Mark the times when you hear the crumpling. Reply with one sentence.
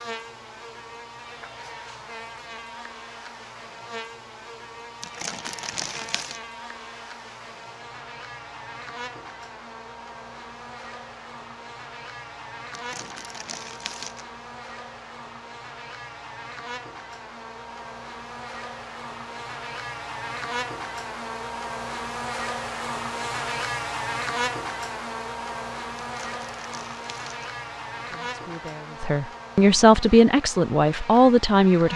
The crumpling can be heard from 5.0 to 6.4 s, from 12.7 to 14.2 s and from 26.0 to 27.5 s.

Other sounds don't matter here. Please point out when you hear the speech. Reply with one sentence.
The speech can be heard from 27.9 to 31.9 s.